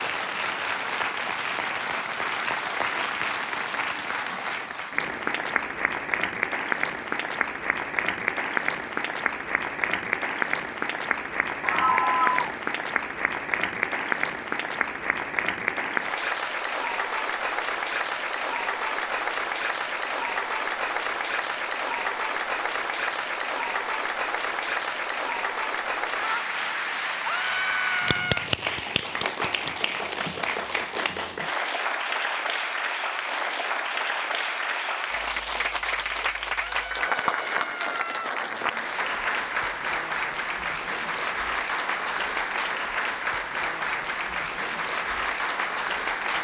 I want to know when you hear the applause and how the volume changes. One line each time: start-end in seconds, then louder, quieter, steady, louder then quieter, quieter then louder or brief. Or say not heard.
0.0-46.3 steady.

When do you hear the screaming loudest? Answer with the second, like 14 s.
12 s.